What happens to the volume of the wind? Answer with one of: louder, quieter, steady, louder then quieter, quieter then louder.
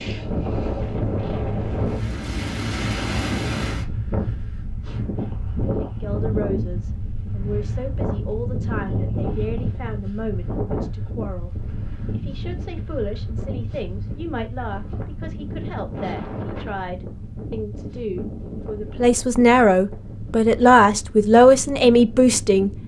quieter.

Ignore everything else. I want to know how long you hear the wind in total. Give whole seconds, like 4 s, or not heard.
23 s.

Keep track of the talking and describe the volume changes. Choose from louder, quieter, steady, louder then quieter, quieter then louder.
louder.